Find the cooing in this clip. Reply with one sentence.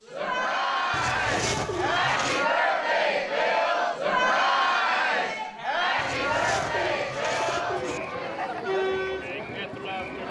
You can hear the cooing from 0.9 to 2.5 s and from 6.0 to 8.0 s.